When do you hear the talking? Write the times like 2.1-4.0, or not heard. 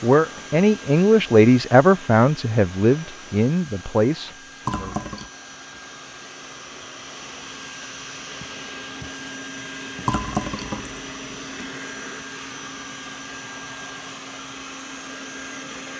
0.0-5.0.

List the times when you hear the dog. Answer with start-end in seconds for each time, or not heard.
not heard.